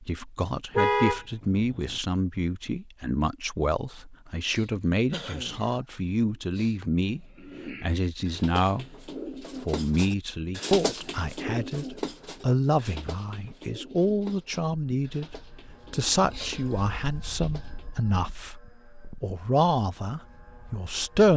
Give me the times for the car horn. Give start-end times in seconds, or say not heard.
0.8-2.0.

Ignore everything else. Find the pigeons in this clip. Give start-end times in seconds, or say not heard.
7.0-17.9.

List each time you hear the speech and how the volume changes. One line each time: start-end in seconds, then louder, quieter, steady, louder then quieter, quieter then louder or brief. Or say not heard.
0.0-21.3 steady.